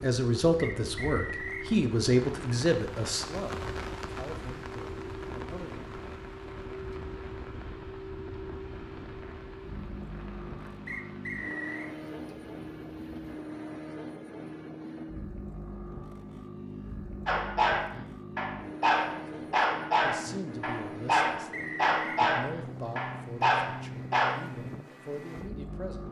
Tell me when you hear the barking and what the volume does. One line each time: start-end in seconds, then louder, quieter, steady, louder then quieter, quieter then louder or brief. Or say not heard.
17.2-24.4 steady.